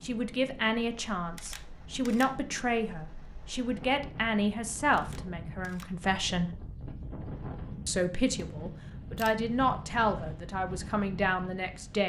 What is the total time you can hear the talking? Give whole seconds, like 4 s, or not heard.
11 s.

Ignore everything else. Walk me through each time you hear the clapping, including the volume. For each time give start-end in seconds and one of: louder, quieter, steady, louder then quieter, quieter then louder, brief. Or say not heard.
not heard.